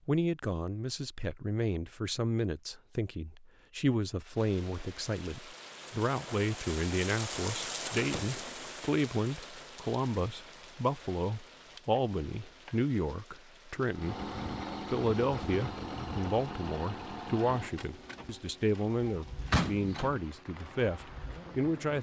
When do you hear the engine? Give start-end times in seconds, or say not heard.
13.9-21.9.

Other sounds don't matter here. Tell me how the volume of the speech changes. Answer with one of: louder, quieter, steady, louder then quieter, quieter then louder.
steady.